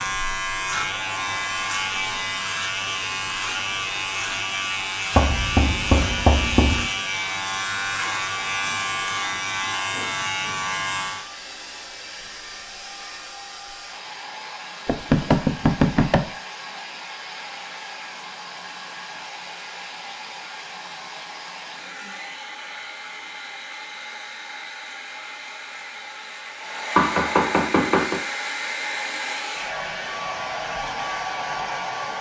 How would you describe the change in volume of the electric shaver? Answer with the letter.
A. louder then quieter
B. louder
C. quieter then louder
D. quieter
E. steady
E.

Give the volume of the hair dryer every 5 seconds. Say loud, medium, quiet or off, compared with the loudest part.
medium, medium, medium, medium, medium, loud, loud.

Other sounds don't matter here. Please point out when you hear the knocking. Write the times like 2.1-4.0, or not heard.
5.2-6.9, 14.8-16.3, 26.9-28.2.